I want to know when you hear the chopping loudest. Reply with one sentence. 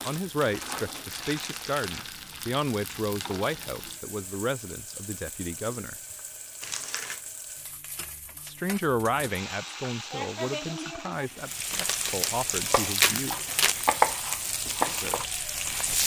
The volume of the chopping peaks at 14 seconds.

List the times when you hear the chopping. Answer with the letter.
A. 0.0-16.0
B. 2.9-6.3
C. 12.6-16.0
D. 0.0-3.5
C.